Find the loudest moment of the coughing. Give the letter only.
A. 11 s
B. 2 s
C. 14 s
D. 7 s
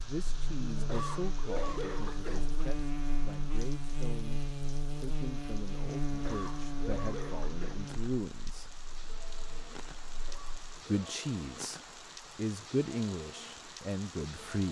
B.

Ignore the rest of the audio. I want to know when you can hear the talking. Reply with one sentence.
You can hear the talking from 0.0 to 8.8 s and from 10.8 to 14.6 s.